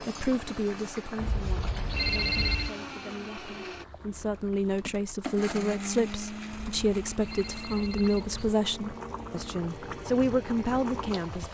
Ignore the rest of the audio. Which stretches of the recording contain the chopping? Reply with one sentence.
You can't hear the chopping here.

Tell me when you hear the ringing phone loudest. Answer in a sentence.
The loudest moment of the ringing phone is at 2 seconds.